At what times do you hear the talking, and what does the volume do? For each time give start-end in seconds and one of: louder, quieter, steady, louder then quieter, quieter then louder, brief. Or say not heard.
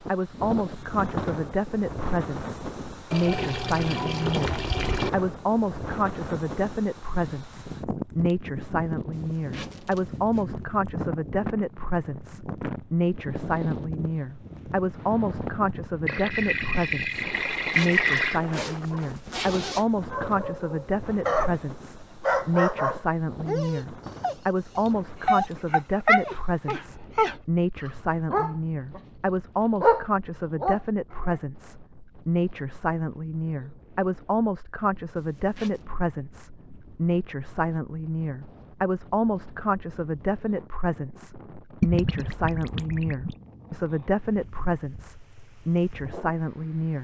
0.1-46.9 steady.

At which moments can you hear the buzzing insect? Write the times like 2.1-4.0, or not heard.
not heard.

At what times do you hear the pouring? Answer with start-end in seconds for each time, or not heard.
3.1-5.1, 16.1-18.4, 41.8-43.4.